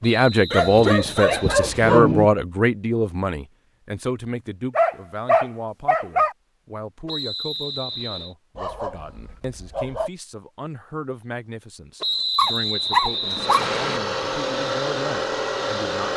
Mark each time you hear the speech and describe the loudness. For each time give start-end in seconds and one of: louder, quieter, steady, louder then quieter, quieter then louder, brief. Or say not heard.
0.0-16.1 quieter.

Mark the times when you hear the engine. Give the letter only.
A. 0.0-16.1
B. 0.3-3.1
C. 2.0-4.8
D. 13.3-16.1
D.